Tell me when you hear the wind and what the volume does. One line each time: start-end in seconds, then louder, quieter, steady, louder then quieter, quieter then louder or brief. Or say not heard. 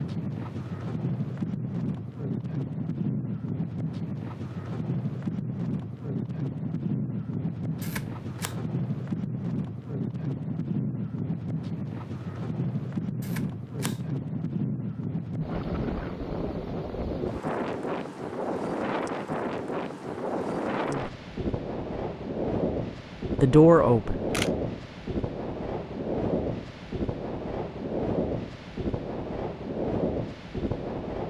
0.0-31.2 steady.